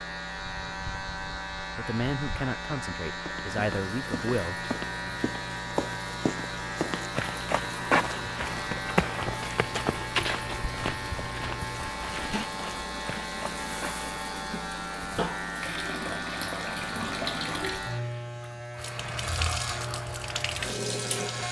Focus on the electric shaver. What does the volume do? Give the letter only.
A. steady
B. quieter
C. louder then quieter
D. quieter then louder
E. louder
A.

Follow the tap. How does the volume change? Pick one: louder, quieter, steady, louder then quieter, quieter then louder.
louder.